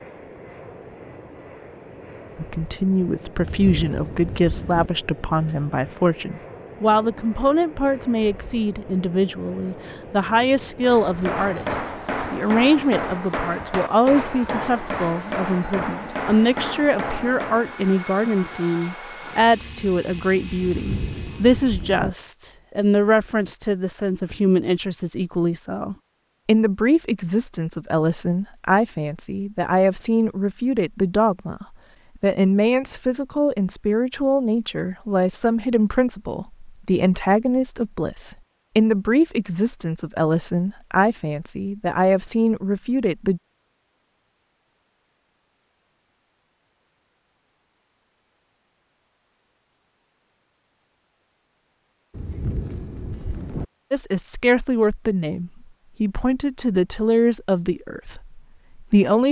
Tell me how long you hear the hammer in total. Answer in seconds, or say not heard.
7 s.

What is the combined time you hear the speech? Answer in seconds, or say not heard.
46 s.